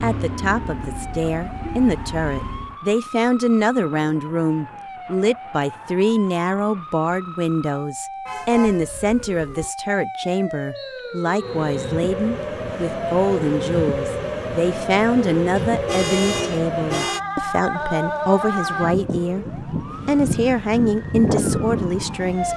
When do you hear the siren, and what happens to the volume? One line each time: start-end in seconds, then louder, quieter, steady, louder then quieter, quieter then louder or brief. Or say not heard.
0.1-22.5 louder.